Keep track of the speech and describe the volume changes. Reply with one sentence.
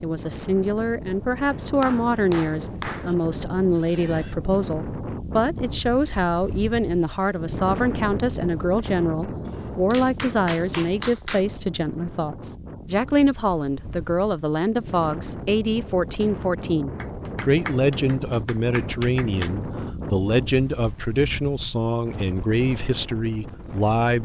The loudness of the speech stays about the same.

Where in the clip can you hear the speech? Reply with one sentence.
You can hear the speech from 0.0 to 24.2 s.